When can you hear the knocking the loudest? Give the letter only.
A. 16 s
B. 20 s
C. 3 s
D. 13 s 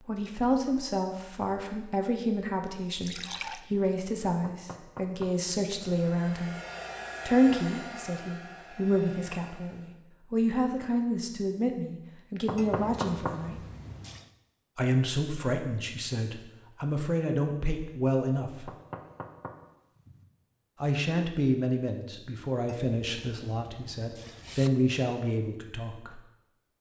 D.